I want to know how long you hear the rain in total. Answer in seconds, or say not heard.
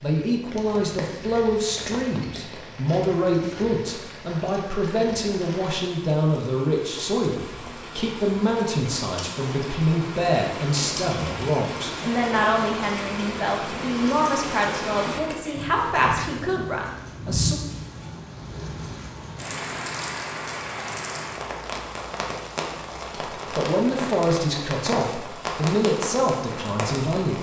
27 s.